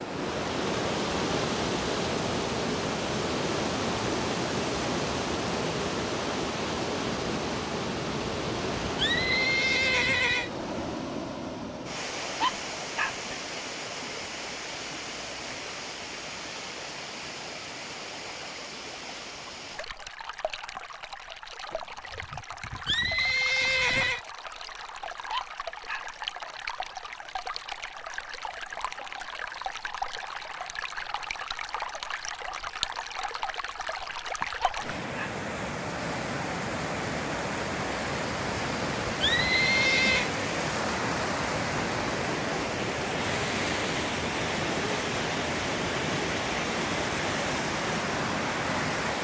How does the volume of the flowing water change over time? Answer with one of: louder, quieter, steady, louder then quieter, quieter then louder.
quieter then louder.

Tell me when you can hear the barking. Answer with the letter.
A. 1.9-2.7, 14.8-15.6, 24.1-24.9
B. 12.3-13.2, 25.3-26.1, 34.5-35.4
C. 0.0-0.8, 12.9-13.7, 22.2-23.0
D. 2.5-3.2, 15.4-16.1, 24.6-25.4
B.